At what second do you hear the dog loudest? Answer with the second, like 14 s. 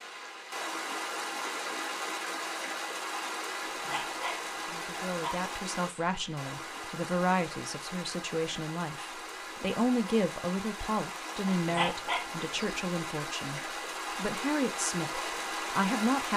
12 s.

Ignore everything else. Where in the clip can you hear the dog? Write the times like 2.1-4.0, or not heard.
3.6-5.4, 11.5-12.8.